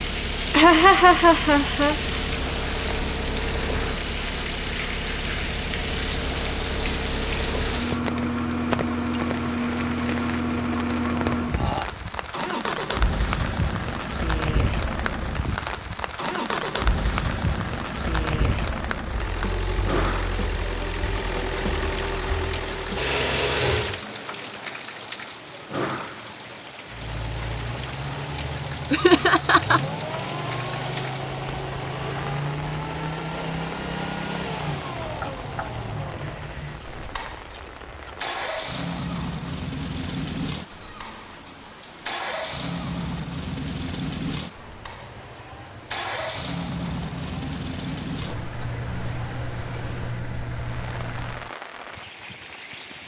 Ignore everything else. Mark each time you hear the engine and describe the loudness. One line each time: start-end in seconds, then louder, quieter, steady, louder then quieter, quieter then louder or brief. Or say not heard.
0.0-24.0 steady
26.9-51.5 steady.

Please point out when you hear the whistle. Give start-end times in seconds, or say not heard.
not heard.